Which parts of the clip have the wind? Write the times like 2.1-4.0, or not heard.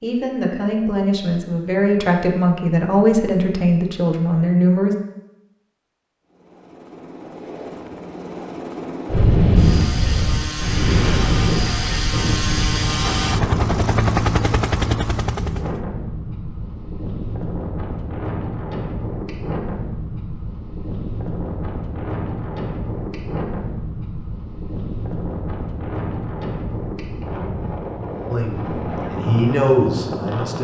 9.1-30.5.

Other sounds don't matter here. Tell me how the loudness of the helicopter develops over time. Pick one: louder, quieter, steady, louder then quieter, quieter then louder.
louder.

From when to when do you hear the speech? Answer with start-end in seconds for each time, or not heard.
0.0-5.0, 28.3-30.5.